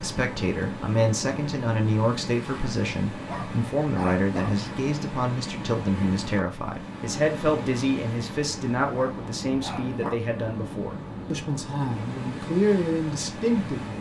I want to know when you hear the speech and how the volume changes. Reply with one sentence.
You can hear the speech from 0.0 to 13.9 s, at a steady volume.